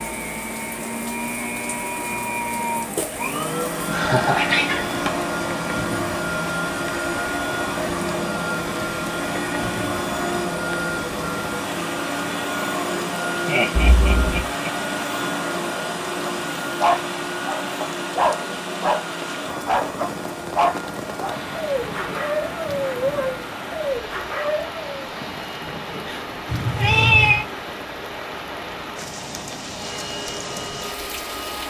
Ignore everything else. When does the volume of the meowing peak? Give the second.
27 s.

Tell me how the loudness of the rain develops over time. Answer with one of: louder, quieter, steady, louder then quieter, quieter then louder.
steady.